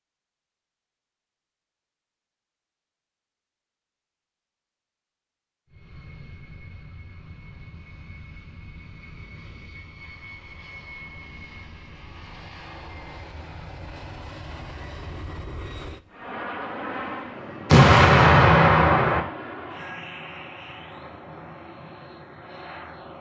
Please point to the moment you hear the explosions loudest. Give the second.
18 s.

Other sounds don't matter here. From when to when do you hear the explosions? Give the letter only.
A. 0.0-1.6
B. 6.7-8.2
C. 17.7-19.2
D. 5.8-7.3
C.